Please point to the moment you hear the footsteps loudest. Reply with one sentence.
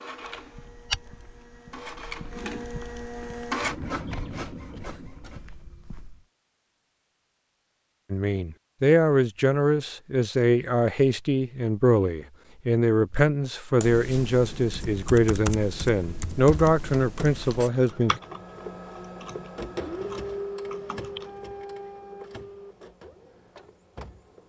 The volume of the footsteps peaks at 1 second.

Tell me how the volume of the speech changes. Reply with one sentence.
The volume of the speech stays about the same.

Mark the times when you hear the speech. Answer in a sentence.
The speech can be heard from 8.1 to 18.1 s.